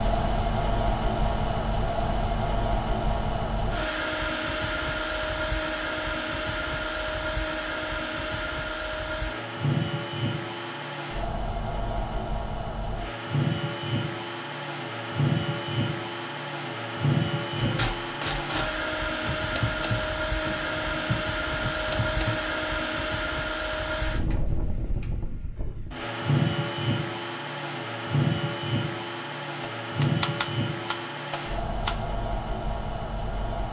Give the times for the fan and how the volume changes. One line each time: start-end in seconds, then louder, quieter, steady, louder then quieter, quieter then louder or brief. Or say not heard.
0.0-33.6 steady.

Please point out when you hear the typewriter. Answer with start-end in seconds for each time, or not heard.
17.6-22.4, 29.6-32.0.